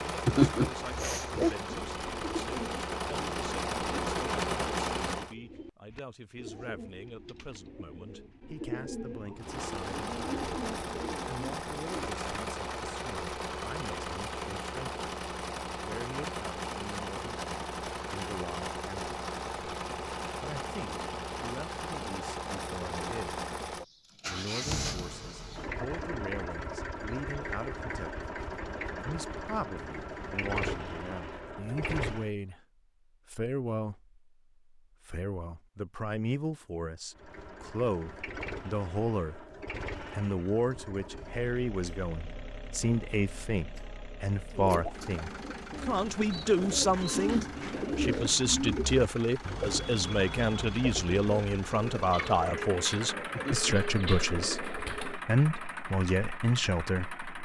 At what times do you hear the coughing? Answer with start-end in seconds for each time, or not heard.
0.2-1.6, 53.3-53.7.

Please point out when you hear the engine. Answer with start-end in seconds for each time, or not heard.
0.0-5.3, 9.3-32.3, 37.1-57.3.